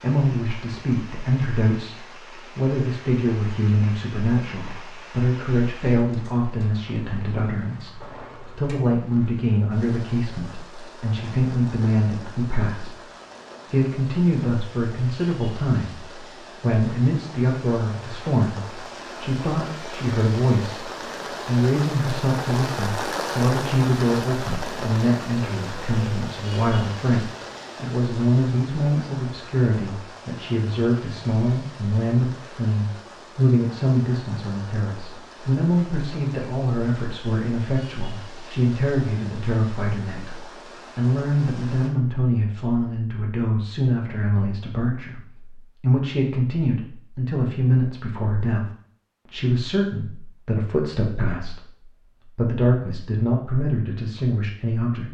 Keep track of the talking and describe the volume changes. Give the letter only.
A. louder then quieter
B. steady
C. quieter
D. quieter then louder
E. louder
B.